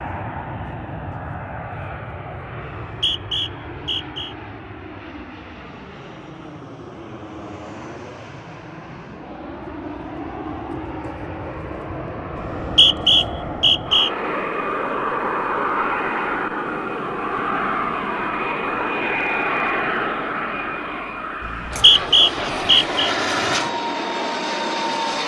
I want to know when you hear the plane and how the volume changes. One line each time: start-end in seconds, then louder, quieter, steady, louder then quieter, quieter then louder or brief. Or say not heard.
0.0-25.2 louder.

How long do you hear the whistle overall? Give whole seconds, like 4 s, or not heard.
5 s.